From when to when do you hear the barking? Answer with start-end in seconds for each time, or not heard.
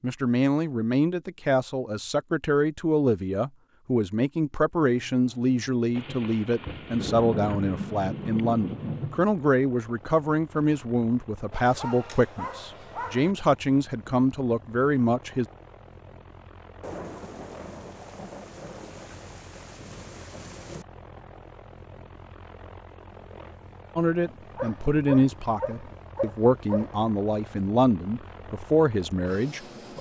11.5-13.3, 24.6-26.9.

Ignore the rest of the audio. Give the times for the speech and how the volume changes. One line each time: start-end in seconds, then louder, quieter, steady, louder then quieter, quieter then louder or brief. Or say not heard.
0.0-15.4 steady
23.9-29.9 quieter then louder.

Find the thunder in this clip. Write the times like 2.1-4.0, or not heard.
6.0-9.2, 16.8-20.9.